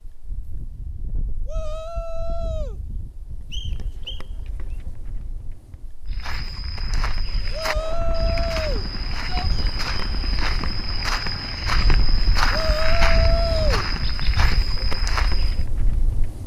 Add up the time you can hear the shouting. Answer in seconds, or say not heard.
5 s.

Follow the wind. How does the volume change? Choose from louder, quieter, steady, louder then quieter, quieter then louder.
louder.